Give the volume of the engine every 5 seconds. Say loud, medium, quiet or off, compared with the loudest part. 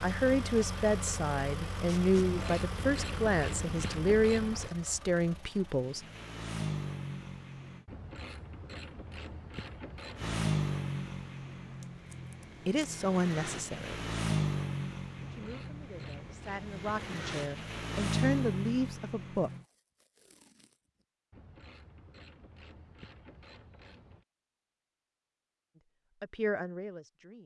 medium, medium, loud, loud, off, off.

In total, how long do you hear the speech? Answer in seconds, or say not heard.
13 s.